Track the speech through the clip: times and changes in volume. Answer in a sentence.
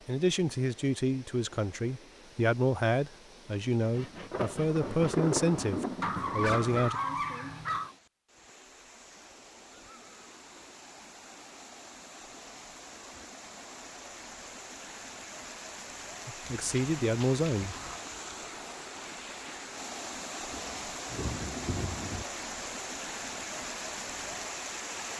The speech can be heard from 0.1 to 7.0 s, at a steady volume; and briefly from 16.2 to 17.8 s.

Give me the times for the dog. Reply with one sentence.
The dog can be heard from 6.0 to 8.0 s and from 16.4 to 18.0 s.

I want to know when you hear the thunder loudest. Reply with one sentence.
The loudest moment of the thunder is at 5 seconds.